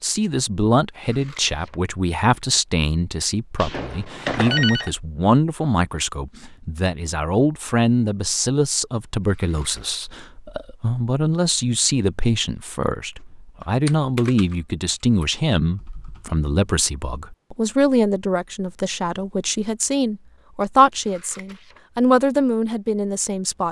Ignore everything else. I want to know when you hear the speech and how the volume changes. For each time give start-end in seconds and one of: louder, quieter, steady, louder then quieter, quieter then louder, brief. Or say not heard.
0.0-23.6 steady.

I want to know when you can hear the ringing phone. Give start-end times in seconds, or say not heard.
3.5-4.9.